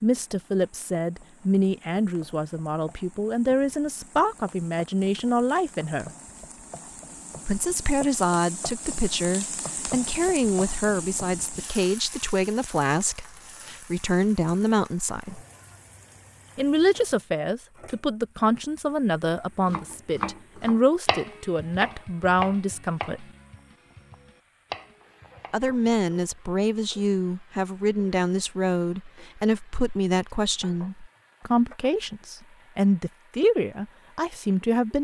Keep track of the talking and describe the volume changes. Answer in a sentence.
The loudness of the talking stays about the same.